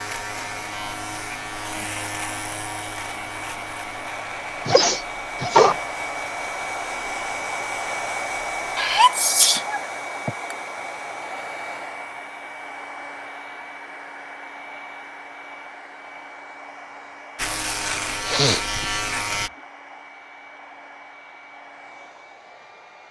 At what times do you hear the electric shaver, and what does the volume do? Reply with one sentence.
The electric shaver can be heard from 0.0 to 8.9 s, getting quieter; and briefly from 17.4 to 19.5 s.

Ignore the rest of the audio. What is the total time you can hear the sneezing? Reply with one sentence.
You can hear the sneezing for 4 seconds altogether.